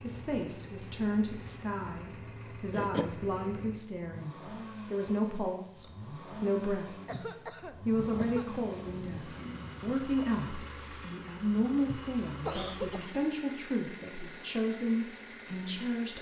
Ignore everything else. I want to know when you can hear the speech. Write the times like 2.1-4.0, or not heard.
0.0-7.0, 7.8-16.1.